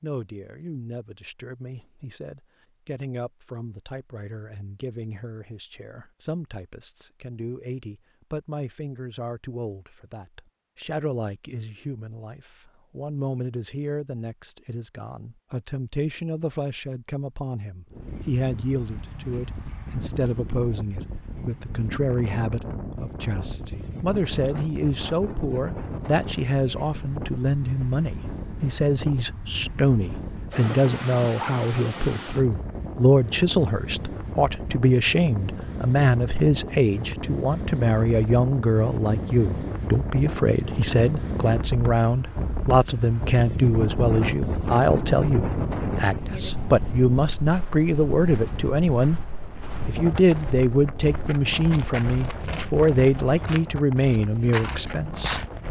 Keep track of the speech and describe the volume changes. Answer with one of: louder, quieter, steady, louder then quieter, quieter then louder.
louder.